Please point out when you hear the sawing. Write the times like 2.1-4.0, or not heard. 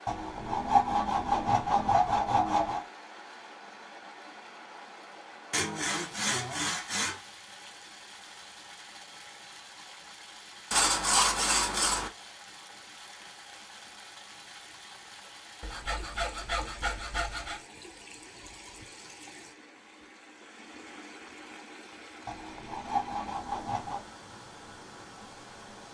0.1-2.9, 5.5-7.2, 10.7-12.1, 15.6-17.6, 22.2-24.1.